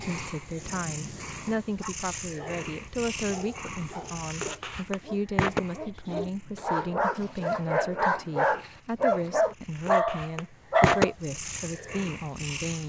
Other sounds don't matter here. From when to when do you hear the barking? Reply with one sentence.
You can hear the barking from 1.8 to 11.2 s.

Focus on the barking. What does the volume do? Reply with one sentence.
The loudness of the barking goes up.